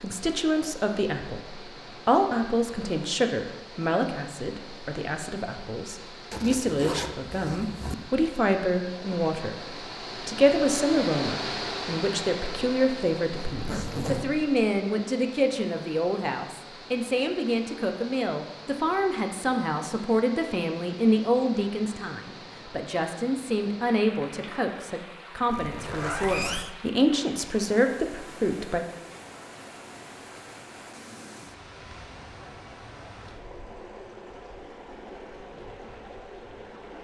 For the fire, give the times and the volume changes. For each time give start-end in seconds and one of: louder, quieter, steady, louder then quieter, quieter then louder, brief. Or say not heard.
not heard.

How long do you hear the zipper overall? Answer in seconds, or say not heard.
4 s.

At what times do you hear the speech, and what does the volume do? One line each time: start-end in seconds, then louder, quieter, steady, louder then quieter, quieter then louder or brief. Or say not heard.
0.0-28.9 steady.